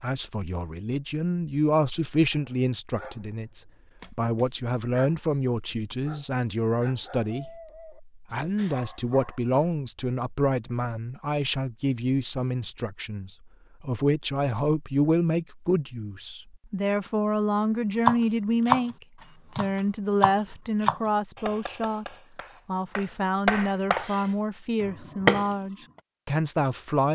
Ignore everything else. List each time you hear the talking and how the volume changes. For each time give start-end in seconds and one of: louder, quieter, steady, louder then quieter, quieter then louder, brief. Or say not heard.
0.0-27.0 steady.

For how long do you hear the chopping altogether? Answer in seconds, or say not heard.
7 s.